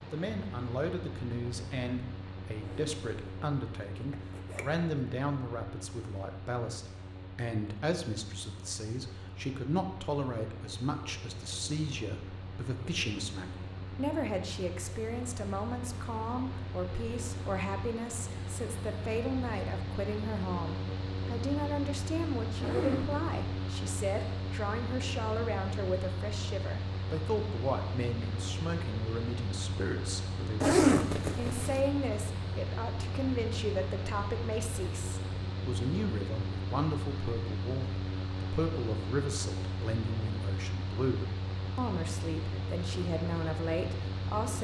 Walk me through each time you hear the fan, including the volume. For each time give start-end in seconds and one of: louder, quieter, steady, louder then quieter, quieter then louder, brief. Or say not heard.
0.0-44.5 louder.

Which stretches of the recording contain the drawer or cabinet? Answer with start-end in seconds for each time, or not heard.
not heard.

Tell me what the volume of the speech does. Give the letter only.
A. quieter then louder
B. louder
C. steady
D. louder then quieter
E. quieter
C.